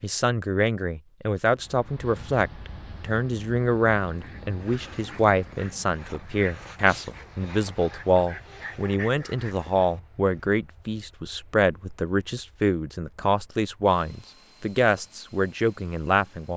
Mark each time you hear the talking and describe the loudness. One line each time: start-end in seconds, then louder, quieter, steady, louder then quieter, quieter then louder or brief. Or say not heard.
0.0-16.5 steady.